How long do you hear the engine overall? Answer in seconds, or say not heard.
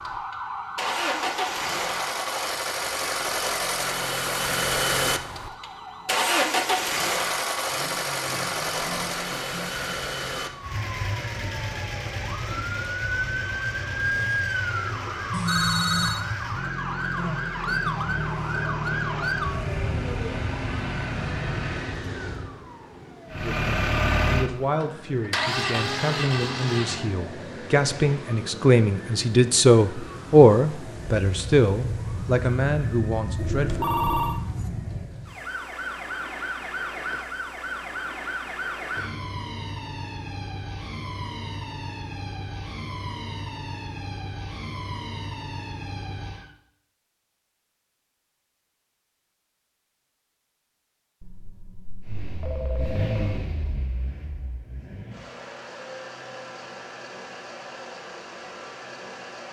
33 s.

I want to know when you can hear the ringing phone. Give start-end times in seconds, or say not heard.
15.3-16.2, 33.4-34.4, 51.2-53.5.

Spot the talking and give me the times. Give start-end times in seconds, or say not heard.
23.3-33.9.